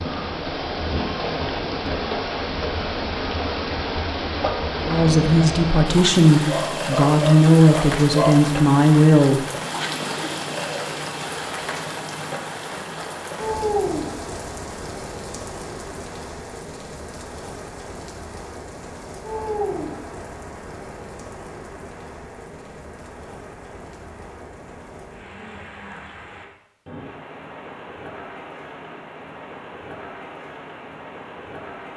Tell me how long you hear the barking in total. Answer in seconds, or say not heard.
2 s.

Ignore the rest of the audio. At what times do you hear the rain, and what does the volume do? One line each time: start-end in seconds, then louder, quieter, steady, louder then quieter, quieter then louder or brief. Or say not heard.
0.0-31.9 quieter.